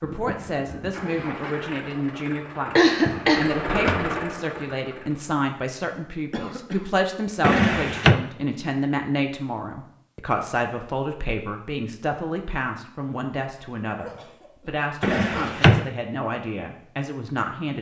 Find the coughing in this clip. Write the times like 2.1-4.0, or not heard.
2.8-3.5, 6.3-6.8, 14.0-15.8.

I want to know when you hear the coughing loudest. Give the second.
3 s.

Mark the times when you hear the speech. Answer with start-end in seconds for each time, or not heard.
0.0-17.7.